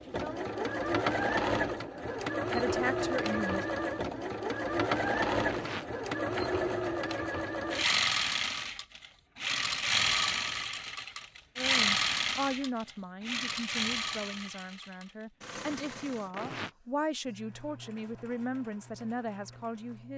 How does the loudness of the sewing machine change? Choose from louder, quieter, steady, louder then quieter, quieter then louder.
quieter.